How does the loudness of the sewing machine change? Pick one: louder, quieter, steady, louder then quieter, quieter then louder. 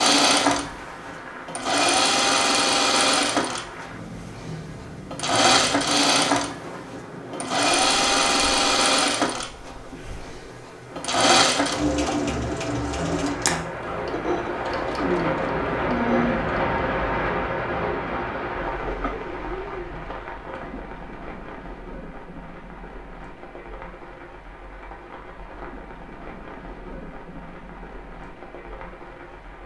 quieter.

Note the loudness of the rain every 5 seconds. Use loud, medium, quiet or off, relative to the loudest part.
quiet, quiet, medium, loud, quiet, quiet.